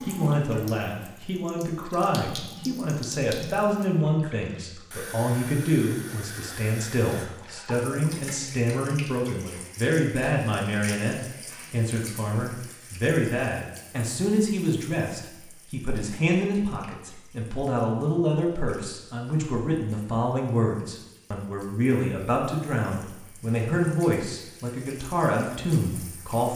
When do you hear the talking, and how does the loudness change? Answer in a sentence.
You can hear the talking from 0.0 to 26.5 s, at a steady volume.